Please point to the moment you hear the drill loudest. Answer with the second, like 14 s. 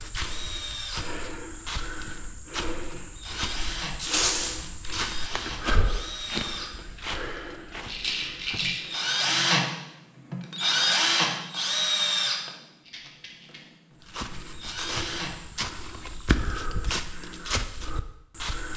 11 s.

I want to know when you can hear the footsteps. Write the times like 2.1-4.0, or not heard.
0.0-9.1, 14.0-18.7.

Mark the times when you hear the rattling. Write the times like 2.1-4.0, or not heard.
4.0-4.5, 7.8-8.8, 12.8-13.6.